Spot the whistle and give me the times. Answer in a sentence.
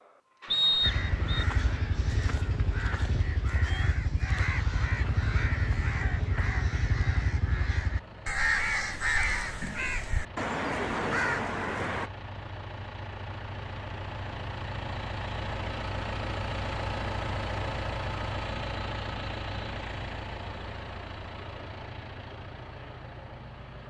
You can hear the whistle from 0.5 to 1.4 s.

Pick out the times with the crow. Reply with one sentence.
The crow can be heard from 0.8 to 12.1 s.